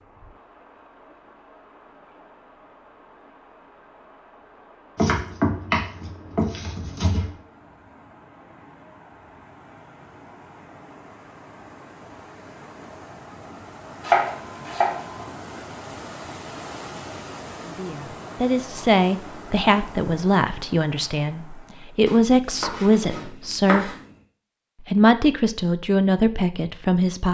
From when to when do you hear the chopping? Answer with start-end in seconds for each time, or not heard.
5.0-7.3, 14.0-15.3, 22.1-24.0.